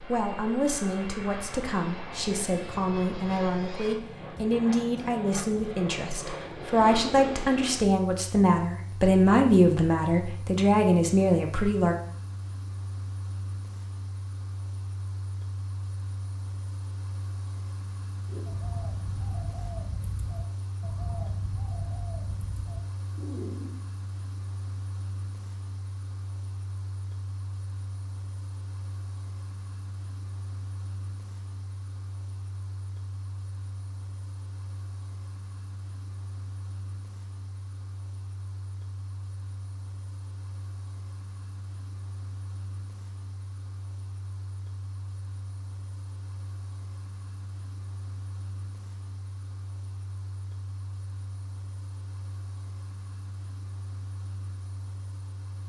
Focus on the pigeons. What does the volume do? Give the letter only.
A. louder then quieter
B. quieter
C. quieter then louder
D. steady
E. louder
D.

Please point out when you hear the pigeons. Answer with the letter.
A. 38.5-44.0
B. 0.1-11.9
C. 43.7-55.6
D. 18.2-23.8
D.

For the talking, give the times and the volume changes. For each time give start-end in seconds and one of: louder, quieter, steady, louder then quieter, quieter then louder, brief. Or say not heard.
0.1-11.9 louder.